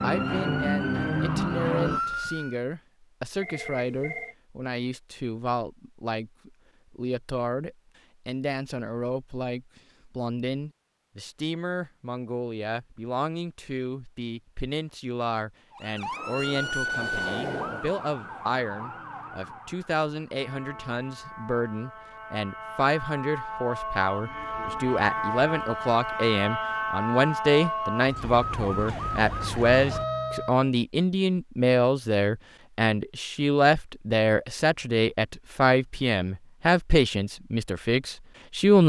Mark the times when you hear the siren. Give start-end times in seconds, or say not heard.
0.0-2.5, 15.7-30.7.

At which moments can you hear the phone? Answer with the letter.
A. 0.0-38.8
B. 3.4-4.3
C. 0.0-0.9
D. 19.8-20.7
B.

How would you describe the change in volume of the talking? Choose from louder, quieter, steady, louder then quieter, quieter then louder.
louder.